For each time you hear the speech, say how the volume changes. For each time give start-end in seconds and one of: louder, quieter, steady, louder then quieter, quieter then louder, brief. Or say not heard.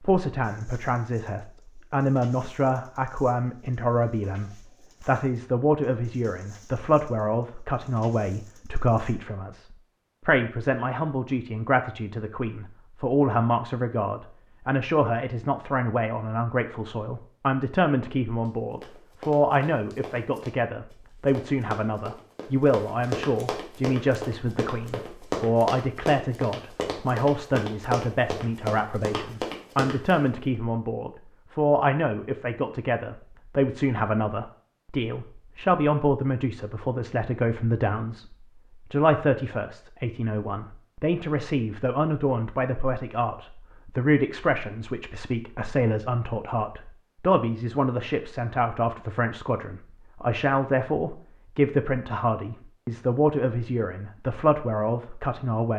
0.0-38.3 steady
38.9-55.7 steady.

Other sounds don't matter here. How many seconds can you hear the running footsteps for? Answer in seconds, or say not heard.
12 s.